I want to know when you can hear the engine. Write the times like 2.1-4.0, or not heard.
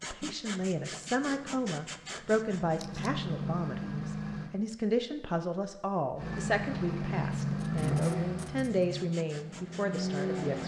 0.0-4.5, 6.2-10.6.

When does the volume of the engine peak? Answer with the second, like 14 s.
8 s.